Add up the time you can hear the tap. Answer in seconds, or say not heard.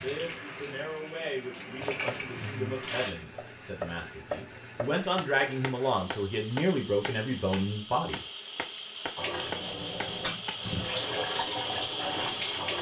7 s.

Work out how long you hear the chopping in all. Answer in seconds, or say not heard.
9 s.